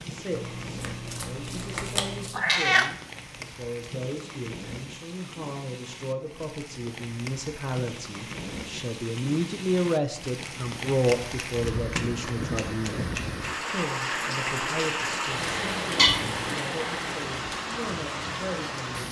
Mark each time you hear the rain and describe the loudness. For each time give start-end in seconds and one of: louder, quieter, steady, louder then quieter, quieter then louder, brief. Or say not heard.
0.0-19.0 louder.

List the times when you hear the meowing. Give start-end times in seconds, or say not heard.
2.4-2.9, 15.9-16.6.